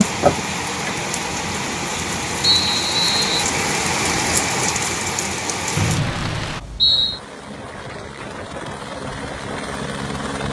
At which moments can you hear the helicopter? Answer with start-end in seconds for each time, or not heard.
6.8-10.4.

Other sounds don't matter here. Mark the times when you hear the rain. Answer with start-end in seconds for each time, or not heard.
0.0-6.6.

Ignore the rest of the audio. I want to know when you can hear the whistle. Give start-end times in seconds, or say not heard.
2.4-3.5, 5.8-7.2.